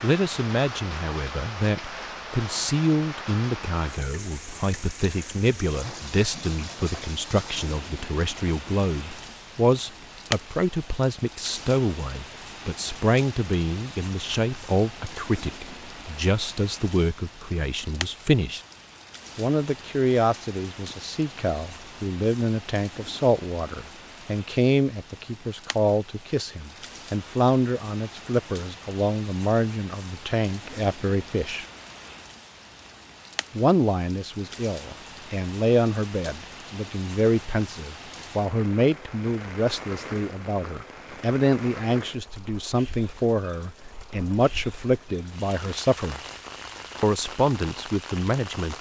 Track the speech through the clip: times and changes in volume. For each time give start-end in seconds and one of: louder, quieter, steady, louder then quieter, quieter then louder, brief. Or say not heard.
0.0-18.6 steady
19.4-31.6 steady
33.5-46.2 steady
47.0-48.7 brief.